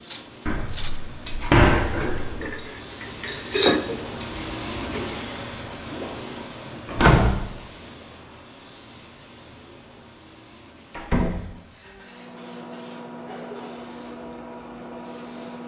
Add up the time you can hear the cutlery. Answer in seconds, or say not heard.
5 s.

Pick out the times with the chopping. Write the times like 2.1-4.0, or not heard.
not heard.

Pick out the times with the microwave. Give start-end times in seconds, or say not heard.
11.9-15.6.